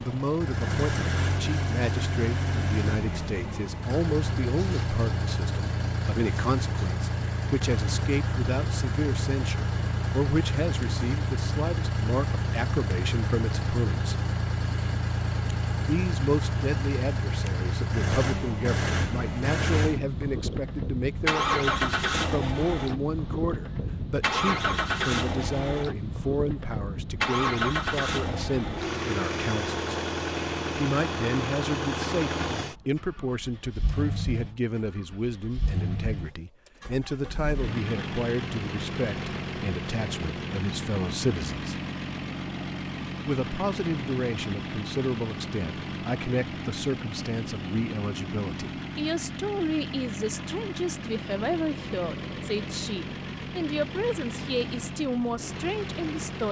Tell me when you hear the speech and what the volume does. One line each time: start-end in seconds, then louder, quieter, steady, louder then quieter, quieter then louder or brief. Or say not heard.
0.0-14.2 steady
15.8-29.9 steady
30.8-41.8 steady
43.2-56.4 steady.